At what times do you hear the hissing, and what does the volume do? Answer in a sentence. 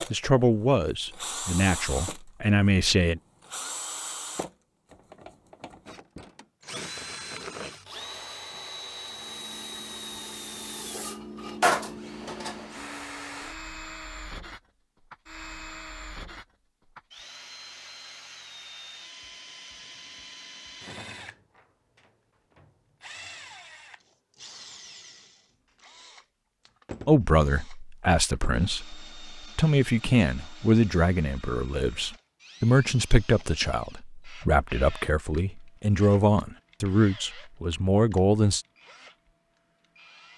You can hear the hissing from 9.0 to 13.1 s, getting louder then quieter.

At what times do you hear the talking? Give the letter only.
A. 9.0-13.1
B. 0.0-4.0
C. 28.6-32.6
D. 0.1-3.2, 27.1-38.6
D.